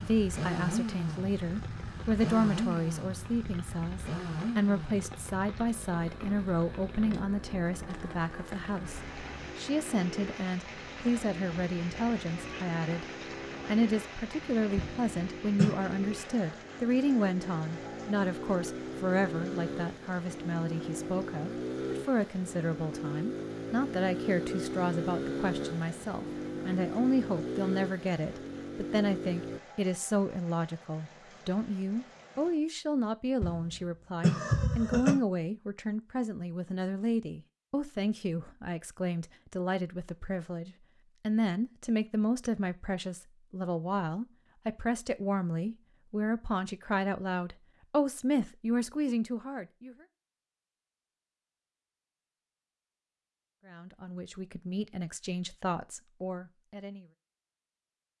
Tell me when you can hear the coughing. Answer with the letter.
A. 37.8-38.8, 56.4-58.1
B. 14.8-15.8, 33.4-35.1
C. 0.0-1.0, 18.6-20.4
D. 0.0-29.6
B.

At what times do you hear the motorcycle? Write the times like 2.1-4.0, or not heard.
0.0-29.6.